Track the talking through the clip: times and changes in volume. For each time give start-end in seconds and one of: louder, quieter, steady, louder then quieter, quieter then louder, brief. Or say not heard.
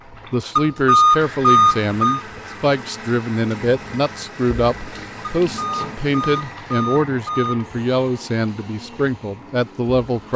0.3-10.3 steady.